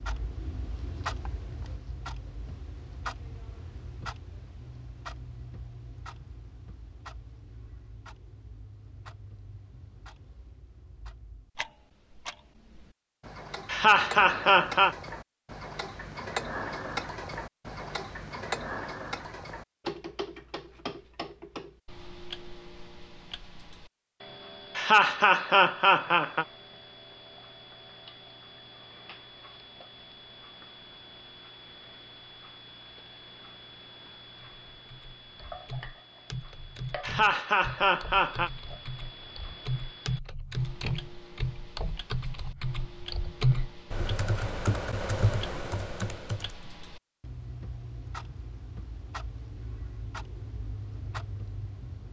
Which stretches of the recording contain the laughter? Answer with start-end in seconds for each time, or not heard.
13.7-14.9, 24.8-26.4, 37.0-38.5.